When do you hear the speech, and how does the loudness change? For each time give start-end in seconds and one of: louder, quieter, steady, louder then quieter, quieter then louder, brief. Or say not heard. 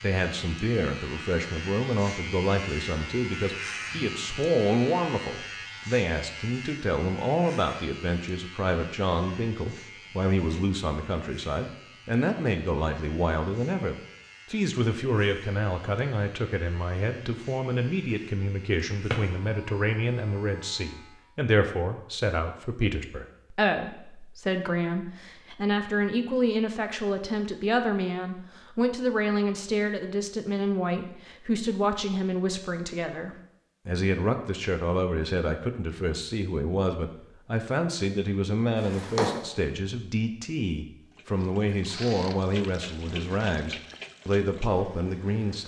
0.0-45.6 steady.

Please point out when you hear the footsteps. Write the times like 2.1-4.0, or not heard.
not heard.